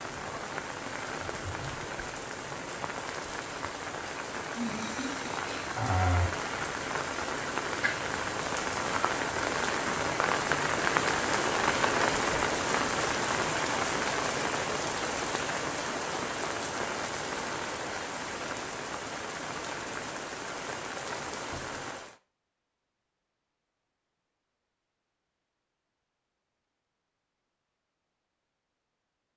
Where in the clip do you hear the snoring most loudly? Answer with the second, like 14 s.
6 s.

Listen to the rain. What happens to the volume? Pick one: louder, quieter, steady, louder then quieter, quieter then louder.
louder then quieter.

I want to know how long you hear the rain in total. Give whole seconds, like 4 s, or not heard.
22 s.